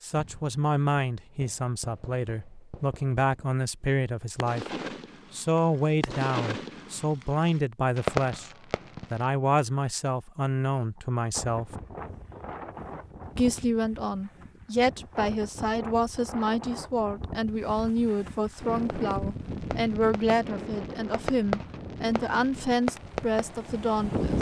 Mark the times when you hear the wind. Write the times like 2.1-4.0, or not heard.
11.3-24.3.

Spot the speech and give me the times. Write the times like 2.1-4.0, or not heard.
0.0-4.7, 5.3-8.5, 9.1-11.7, 13.3-24.3.